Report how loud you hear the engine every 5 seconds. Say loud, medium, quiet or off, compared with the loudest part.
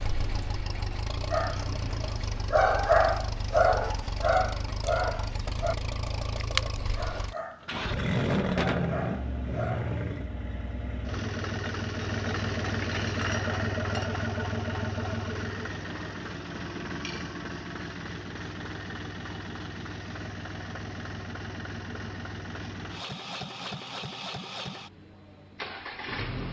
medium, loud, loud, medium, medium, medium.